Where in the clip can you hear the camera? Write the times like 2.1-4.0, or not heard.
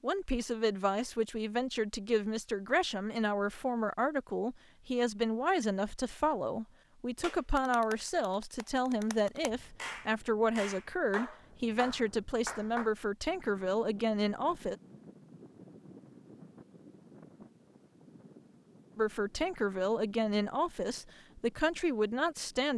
not heard.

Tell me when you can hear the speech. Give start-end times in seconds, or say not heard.
0.0-14.8, 18.9-22.7.